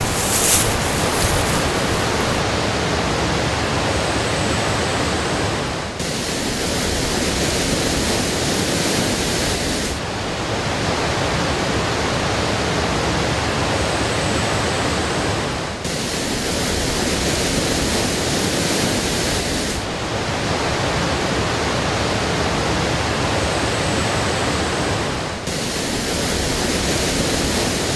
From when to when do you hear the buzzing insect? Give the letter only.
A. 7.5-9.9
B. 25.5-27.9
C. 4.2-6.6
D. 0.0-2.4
D.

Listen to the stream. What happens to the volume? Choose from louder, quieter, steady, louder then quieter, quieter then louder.
steady.